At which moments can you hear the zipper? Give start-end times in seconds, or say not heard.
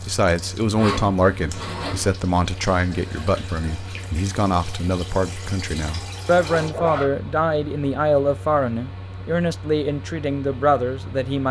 0.8-2.1, 6.3-7.1.